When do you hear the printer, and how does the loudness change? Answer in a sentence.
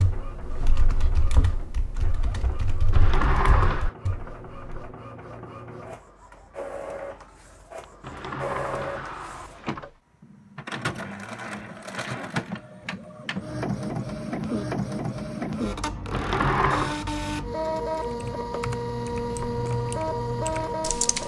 The printer can be heard from 0.0 to 21.2 s, getting louder.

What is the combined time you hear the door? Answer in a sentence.
The door can be heard for 4 seconds in total.